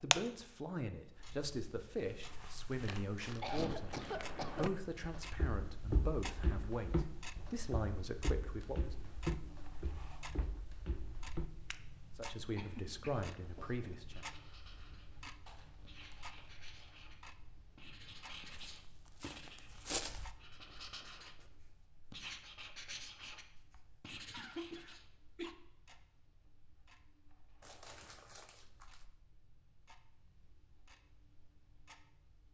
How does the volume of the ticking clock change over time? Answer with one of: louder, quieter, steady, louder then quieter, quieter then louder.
quieter.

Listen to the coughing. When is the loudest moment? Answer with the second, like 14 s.
4 s.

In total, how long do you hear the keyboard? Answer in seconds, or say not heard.
not heard.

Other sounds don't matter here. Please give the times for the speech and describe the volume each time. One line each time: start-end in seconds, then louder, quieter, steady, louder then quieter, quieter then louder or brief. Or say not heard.
0.0-9.1 steady
12.2-14.2 brief.